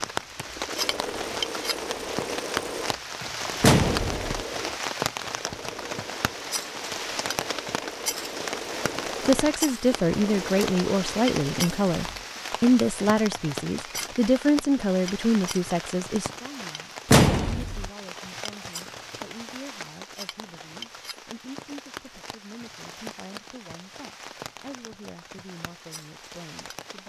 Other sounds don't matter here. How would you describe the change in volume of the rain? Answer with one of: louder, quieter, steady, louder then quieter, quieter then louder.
quieter.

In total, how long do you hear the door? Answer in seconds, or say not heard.
2 s.